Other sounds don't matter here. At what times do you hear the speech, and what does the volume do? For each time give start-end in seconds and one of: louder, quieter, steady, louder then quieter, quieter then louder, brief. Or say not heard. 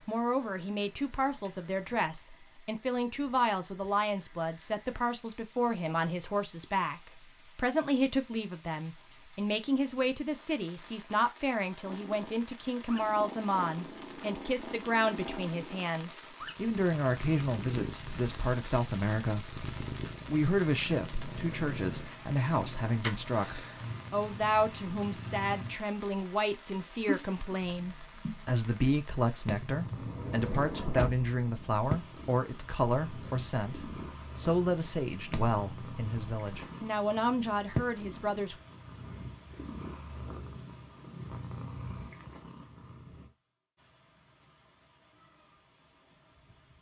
0.1-19.6 steady
20.2-38.5 steady.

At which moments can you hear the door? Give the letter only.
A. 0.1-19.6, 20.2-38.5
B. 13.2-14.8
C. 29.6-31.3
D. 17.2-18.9
C.